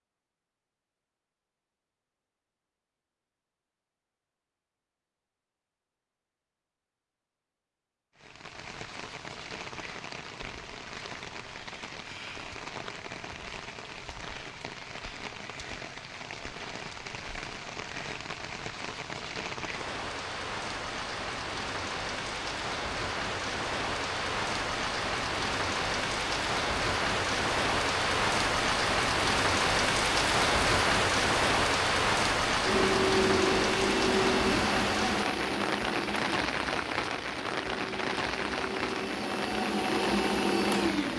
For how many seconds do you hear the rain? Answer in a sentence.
You can hear the rain for 33 seconds altogether.